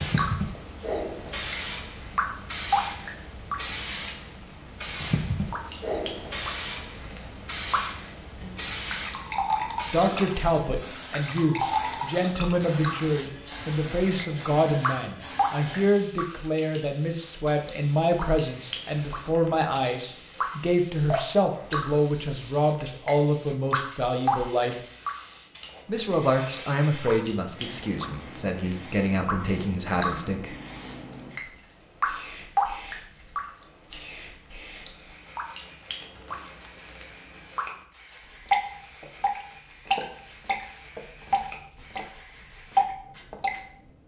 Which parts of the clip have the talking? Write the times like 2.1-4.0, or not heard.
9.9-24.8, 25.9-30.6.